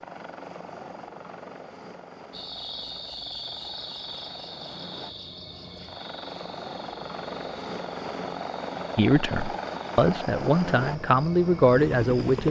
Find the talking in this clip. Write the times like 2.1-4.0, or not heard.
8.9-12.4.